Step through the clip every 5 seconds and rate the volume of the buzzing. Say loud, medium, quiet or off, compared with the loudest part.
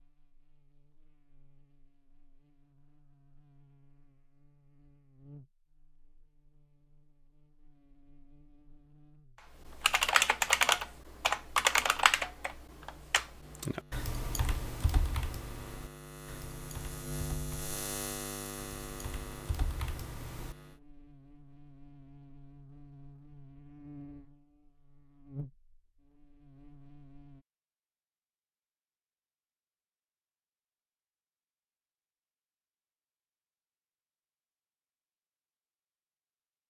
quiet, quiet, quiet, loud, medium, medium, off, off.